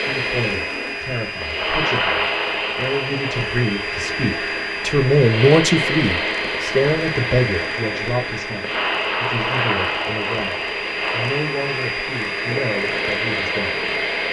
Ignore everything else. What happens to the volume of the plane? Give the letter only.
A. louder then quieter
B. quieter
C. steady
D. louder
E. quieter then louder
C.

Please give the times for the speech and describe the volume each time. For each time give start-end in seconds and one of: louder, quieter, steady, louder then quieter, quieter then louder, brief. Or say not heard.
0.0-14.2 louder then quieter.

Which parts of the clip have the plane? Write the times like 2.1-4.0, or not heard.
0.0-14.2.